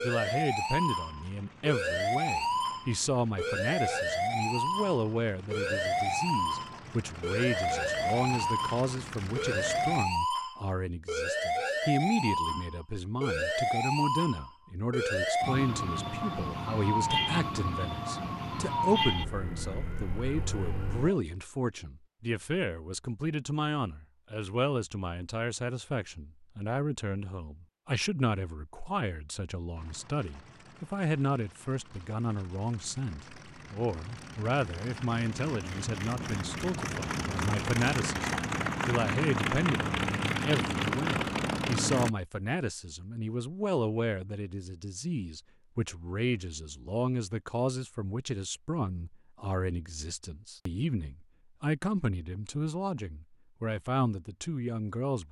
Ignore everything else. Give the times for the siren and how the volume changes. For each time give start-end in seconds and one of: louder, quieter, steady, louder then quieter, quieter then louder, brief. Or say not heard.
0.0-21.1 steady.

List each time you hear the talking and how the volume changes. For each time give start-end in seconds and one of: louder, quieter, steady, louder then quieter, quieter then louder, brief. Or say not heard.
0.0-55.2 steady.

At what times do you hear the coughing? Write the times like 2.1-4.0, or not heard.
not heard.